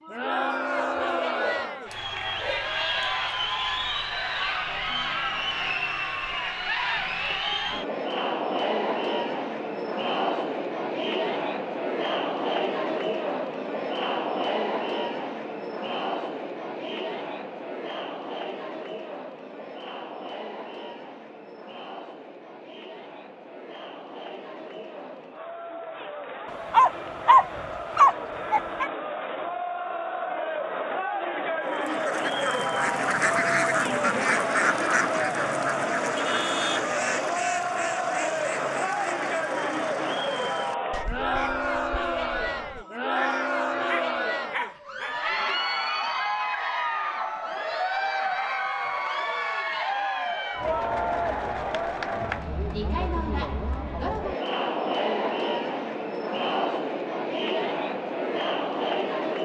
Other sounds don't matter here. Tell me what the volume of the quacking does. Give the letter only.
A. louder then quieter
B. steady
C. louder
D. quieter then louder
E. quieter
E.